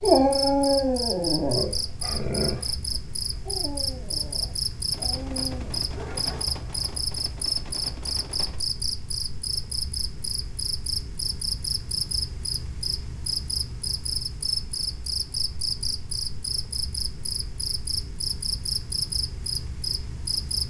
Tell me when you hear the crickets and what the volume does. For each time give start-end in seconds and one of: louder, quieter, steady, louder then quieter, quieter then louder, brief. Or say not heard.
0.0-20.6 steady.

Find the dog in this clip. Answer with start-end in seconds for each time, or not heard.
0.0-6.5.